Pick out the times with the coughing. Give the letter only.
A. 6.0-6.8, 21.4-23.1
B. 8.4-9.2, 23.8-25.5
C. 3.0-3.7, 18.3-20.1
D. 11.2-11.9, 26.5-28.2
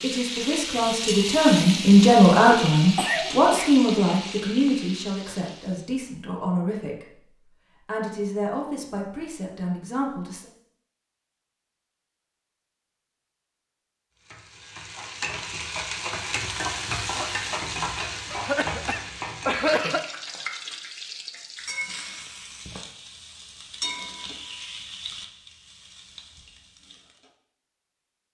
C.